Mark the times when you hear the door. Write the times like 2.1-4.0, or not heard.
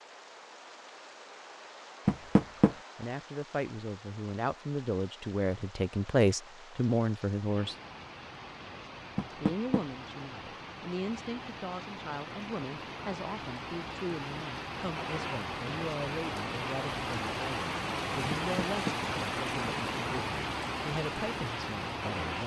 2.0-2.8, 9.2-9.8, 18.4-18.9.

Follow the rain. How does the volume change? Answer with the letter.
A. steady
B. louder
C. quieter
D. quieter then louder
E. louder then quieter
B.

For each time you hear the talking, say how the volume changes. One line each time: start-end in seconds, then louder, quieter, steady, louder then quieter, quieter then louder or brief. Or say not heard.
3.0-7.8 louder
9.4-22.4 steady.